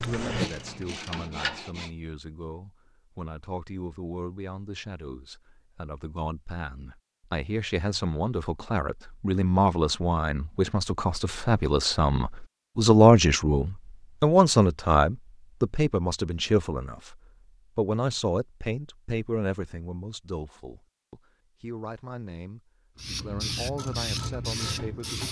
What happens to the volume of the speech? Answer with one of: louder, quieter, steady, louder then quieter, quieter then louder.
louder then quieter.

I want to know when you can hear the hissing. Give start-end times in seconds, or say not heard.
22.9-25.2.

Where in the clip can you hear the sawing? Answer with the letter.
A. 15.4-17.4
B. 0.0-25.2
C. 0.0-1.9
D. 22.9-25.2
C.